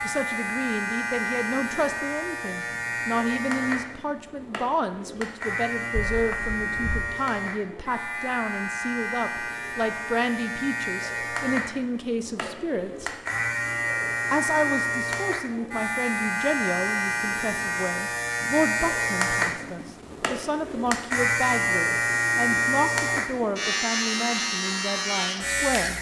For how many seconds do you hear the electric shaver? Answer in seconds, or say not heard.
26 s.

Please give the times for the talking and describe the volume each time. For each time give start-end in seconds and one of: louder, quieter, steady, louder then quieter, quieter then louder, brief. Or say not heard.
0.0-13.1 steady
14.3-25.9 steady.